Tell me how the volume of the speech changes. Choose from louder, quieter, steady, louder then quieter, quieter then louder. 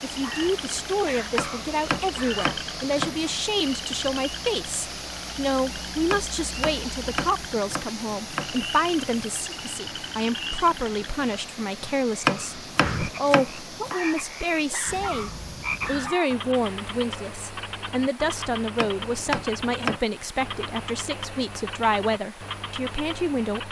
steady.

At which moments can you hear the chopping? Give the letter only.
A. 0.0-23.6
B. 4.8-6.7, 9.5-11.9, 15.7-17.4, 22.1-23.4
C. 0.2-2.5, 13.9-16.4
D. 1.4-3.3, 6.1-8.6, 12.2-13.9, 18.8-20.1
D.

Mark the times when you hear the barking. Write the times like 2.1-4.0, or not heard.
0.2-2.5, 13.9-16.4.